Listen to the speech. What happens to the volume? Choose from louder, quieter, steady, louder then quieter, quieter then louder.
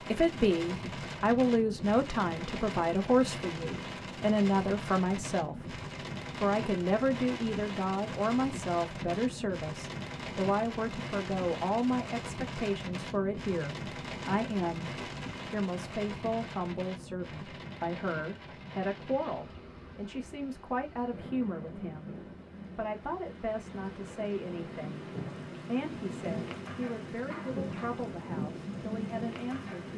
quieter.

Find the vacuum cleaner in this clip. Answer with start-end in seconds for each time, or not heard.
not heard.